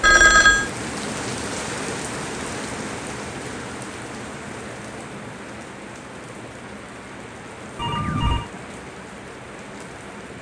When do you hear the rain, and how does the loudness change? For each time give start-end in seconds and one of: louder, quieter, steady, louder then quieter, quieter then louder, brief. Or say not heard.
0.0-10.3 quieter.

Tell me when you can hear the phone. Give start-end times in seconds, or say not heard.
0.0-0.7, 7.8-8.5.